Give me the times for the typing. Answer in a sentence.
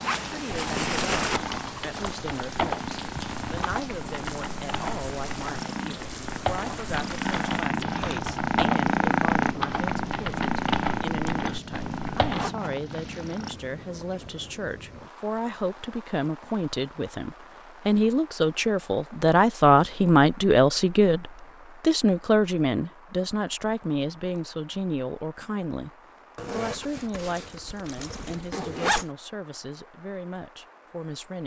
The typing can be heard from 0.5 to 12.5 s.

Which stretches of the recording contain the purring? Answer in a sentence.
The purring can be heard from 0.1 to 13.6 s.